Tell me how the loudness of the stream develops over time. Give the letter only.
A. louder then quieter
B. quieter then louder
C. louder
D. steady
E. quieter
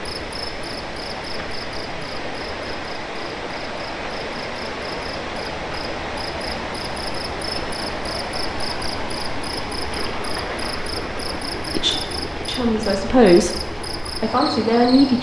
D.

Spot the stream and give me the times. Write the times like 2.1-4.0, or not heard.
0.0-15.1.